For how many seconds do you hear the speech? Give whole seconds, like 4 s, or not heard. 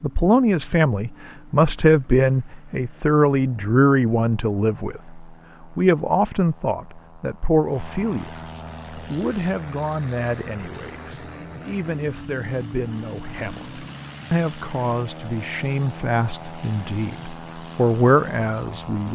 19 s.